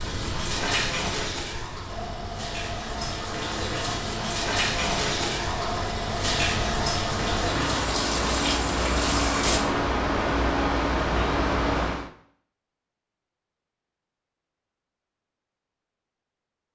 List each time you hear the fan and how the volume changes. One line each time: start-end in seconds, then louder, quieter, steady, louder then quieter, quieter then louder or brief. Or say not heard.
0.0-12.1 louder.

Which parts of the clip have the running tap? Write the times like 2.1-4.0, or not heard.
0.0-9.6.